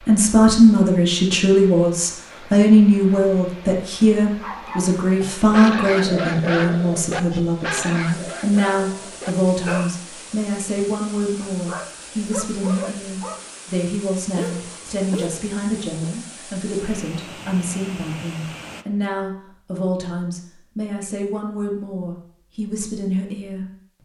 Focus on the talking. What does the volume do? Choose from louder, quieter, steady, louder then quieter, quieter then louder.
quieter.